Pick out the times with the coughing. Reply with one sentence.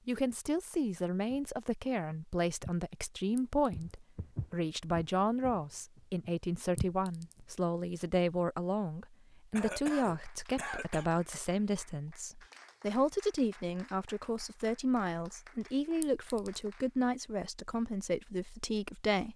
You can hear the coughing from 9.6 to 11.1 s.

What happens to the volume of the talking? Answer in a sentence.
The loudness of the talking stays about the same.